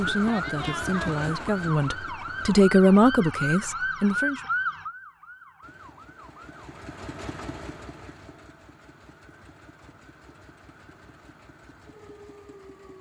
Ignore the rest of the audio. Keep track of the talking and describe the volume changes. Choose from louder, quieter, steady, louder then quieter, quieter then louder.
louder then quieter.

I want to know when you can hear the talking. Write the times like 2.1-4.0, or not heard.
0.0-4.4.